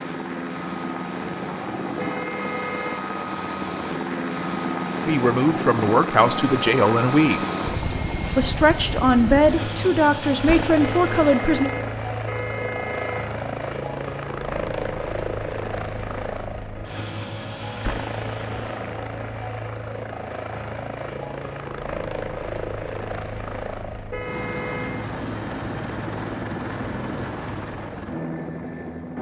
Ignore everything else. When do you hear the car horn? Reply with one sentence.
The car horn can be heard from 1.9 to 3.0 s, from 10.8 to 13.3 s and from 24.1 to 25.1 s.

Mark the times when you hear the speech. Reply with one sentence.
The speech can be heard from 5.0 to 7.4 s and from 8.3 to 11.7 s.